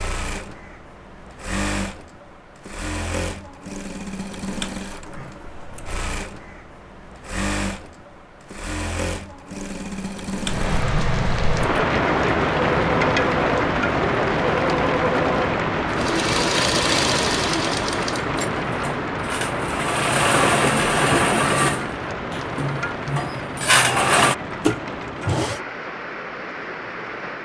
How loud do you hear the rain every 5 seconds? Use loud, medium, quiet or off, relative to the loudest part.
off, off, loud, loud, medium, medium.